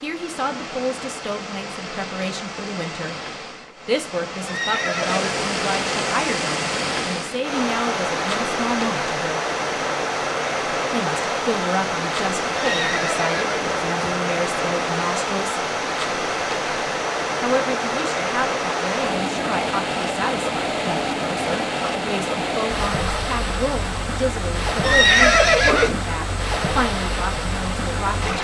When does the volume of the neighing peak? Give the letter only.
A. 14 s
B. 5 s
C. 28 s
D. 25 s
D.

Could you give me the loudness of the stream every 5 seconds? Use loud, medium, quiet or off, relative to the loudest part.
medium, loud, loud, loud, loud, loud.